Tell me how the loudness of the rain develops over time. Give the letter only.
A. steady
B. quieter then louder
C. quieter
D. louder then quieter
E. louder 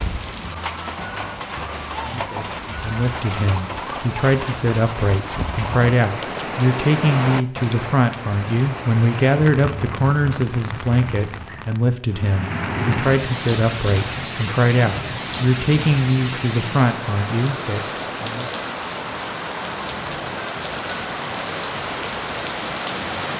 A.